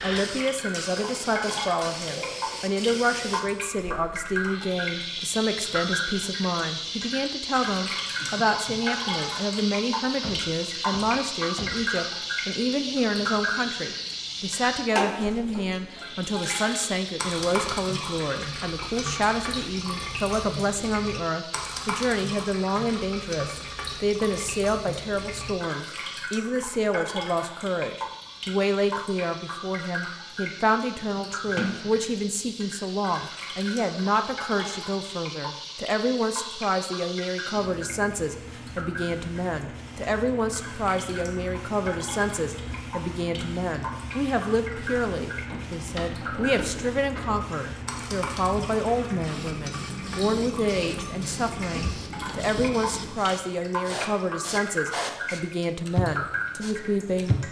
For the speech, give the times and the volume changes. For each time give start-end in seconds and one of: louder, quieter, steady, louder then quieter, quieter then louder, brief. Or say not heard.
0.0-57.4 steady.